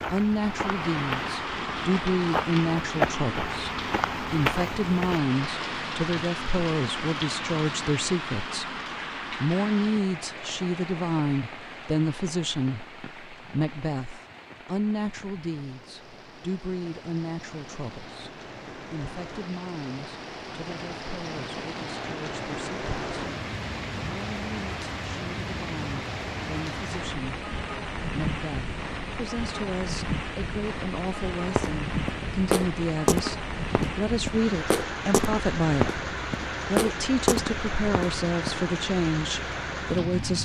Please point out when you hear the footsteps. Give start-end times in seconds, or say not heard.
0.0-5.2, 31.4-38.7.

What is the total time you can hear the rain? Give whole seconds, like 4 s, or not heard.
40 s.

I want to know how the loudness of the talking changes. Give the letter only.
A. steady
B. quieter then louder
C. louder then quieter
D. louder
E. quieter
B.